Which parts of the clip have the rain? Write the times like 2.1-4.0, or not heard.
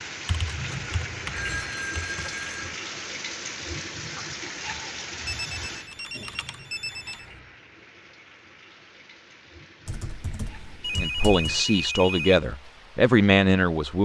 0.0-14.0.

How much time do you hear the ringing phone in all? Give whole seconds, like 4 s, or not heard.
6 s.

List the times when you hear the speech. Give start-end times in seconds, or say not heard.
10.9-14.0.